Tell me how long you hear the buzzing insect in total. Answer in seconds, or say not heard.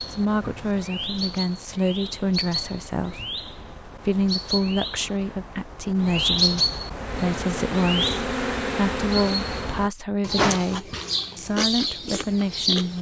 3 s.